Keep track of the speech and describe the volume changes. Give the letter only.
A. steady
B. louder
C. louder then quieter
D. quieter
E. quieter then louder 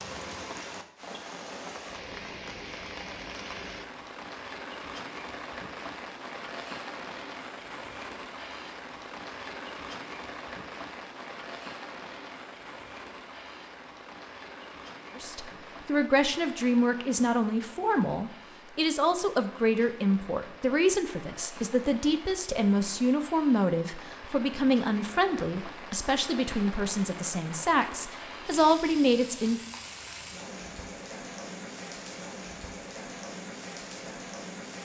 A.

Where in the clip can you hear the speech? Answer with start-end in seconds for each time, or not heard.
15.2-29.6.